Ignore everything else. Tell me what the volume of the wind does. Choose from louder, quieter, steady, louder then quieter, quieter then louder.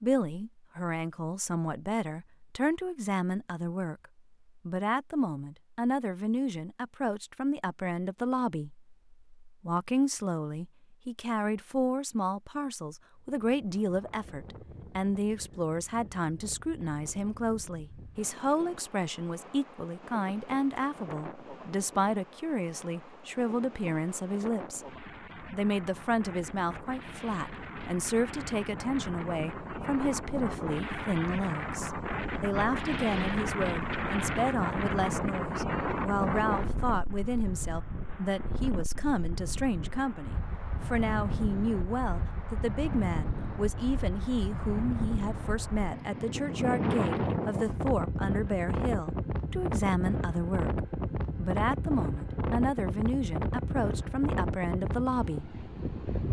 louder.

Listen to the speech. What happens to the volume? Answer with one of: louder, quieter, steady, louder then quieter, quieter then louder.
steady.